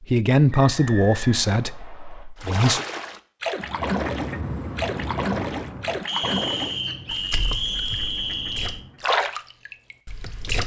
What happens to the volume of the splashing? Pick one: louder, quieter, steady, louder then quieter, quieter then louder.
quieter then louder.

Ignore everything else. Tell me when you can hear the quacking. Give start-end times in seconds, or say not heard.
3.6-9.1.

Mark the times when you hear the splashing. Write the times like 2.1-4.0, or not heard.
2.4-10.6.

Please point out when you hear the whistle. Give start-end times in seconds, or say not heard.
0.5-2.2, 6.0-8.8.